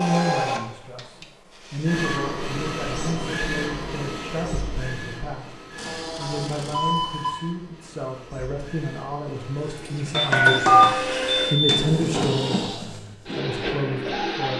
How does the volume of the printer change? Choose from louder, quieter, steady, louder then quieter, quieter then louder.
quieter then louder.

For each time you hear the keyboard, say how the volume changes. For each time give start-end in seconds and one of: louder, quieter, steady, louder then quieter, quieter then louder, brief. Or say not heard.
not heard.